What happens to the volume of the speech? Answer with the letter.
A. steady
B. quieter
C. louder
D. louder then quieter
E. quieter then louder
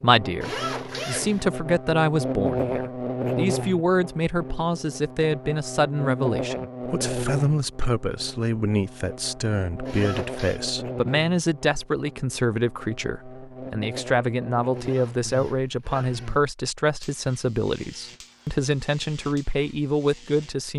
A.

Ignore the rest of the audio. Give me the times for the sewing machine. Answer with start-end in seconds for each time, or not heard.
not heard.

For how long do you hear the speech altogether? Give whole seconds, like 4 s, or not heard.
21 s.